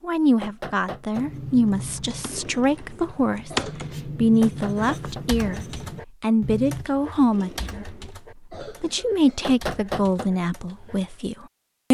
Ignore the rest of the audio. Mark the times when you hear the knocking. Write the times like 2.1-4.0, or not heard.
0.4-1.2, 4.4-5.2, 9.4-10.3.